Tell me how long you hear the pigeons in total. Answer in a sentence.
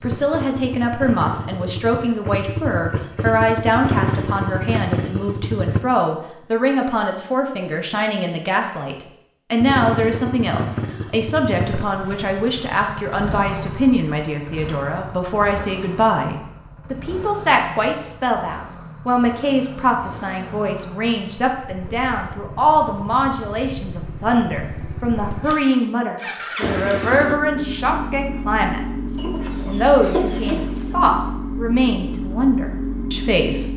You can hear the pigeons for 2 seconds altogether.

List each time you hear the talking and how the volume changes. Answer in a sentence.
You can hear the talking from 0.0 to 33.7 s, at a steady volume.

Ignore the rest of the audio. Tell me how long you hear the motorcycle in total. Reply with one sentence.
The motorcycle can be heard for 30 seconds in total.